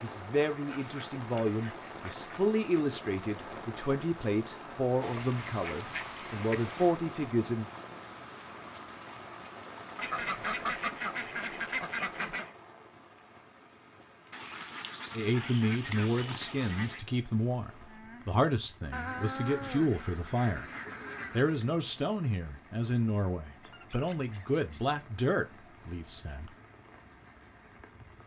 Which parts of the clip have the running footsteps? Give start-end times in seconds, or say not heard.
not heard.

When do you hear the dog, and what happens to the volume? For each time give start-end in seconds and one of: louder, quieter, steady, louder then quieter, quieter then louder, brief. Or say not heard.
not heard.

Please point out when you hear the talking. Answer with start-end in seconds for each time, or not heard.
0.0-7.7, 15.2-20.7, 21.3-26.5.